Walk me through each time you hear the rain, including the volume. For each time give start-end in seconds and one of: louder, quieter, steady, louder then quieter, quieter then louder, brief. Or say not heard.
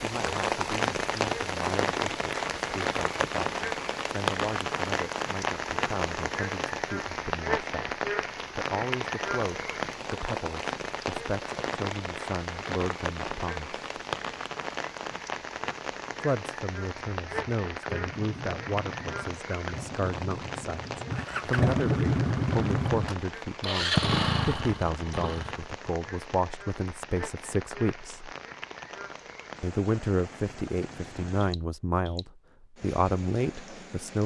0.0-34.2 quieter.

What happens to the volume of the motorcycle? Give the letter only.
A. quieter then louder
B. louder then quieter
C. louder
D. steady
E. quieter
C.